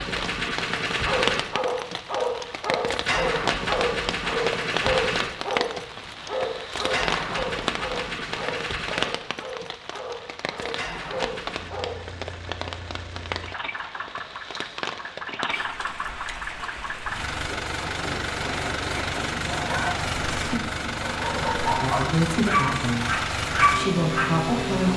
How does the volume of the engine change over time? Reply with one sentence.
The volume of the engine goes down, then up.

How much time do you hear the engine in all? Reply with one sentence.
You can hear the engine for 25 seconds altogether.